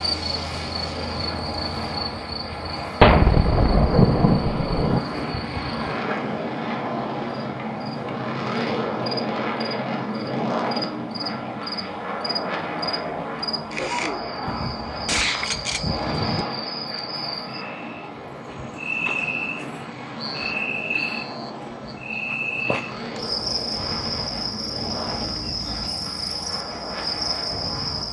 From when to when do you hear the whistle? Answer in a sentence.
The whistle can't be heard in this clip.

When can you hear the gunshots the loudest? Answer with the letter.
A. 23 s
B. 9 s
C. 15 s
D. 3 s
D.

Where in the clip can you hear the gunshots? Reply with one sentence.
You can hear the gunshots from 3.0 to 5.0 s and from 14.4 to 16.4 s.